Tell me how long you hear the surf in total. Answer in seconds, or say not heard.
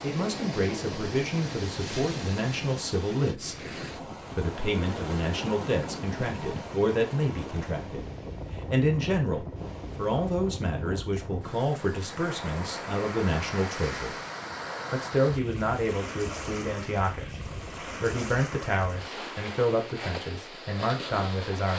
22 s.